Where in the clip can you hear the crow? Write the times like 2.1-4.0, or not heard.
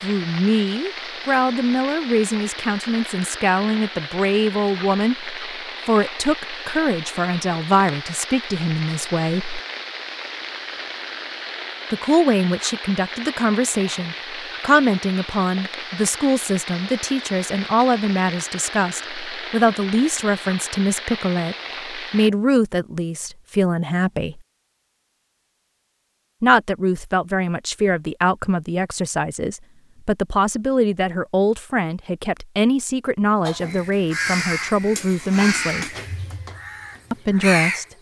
33.5-37.9.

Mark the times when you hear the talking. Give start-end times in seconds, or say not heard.
0.0-9.6, 11.9-24.4, 26.4-35.9, 37.1-37.9.